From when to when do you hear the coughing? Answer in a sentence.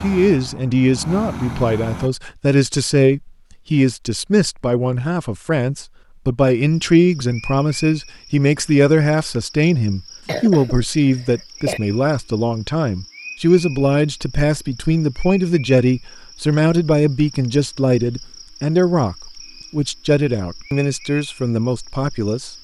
You can hear the coughing from 10.2 to 11.8 s.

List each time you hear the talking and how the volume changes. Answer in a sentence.
The talking can be heard from 0.0 to 22.5 s, at a steady volume.